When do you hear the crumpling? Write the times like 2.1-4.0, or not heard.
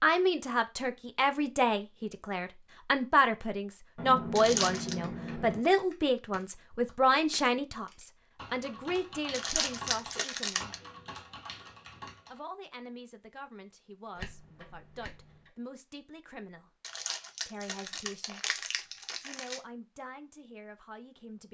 4.3-5.0, 9.3-10.8, 16.8-19.6.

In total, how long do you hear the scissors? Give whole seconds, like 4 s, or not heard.
3 s.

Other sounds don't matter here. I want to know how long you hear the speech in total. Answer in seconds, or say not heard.
18 s.